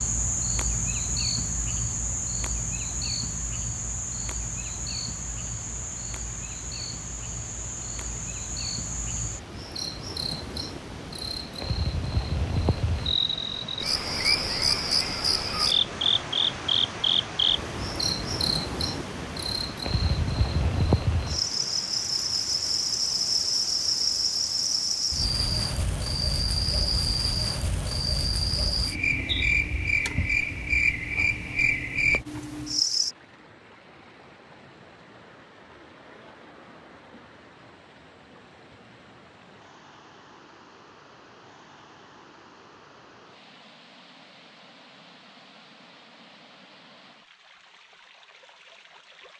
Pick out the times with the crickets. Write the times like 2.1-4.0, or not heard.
0.0-33.1.